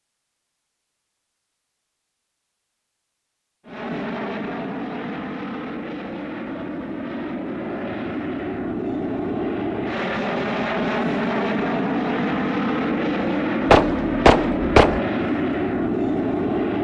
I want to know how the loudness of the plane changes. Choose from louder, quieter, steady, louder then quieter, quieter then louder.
louder.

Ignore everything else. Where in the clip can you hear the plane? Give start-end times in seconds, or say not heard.
3.6-16.7.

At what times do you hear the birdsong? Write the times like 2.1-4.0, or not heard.
not heard.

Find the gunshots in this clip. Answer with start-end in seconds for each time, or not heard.
13.7-15.0.